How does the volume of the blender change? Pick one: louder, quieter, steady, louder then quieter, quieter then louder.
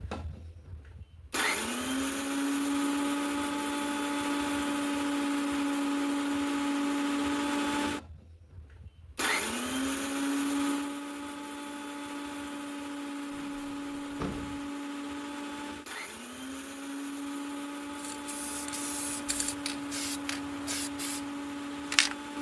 quieter.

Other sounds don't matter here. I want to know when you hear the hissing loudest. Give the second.
22 s.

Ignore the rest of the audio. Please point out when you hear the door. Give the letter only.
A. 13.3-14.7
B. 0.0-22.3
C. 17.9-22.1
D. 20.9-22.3
A.